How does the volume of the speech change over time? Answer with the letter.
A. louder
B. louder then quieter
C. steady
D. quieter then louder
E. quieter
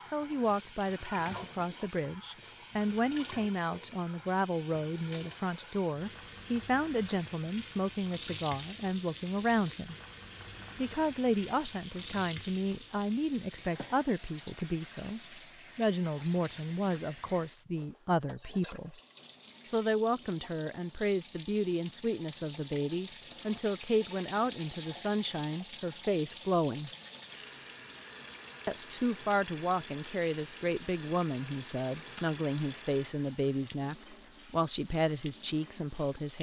C.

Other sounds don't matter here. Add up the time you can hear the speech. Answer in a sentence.
You can hear the speech for 33 seconds altogether.